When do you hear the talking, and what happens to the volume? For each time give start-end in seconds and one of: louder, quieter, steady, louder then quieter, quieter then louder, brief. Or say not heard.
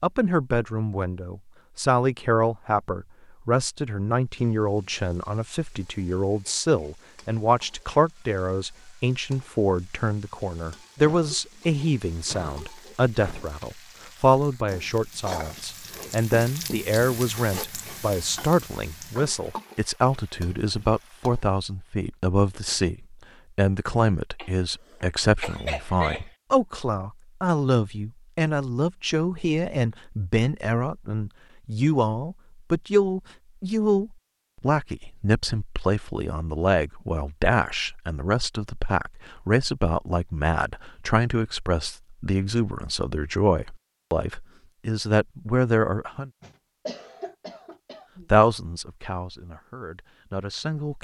0.0-46.3 steady
48.3-50.9 brief.